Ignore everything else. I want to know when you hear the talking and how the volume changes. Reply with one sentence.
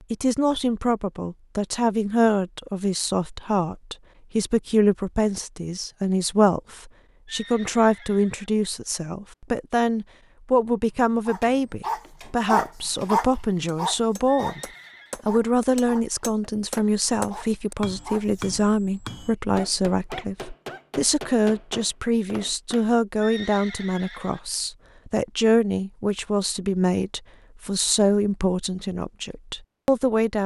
You can hear the talking from 0.1 to 30.4 s, at a steady volume.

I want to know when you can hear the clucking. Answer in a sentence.
The clucking can't be heard in this clip.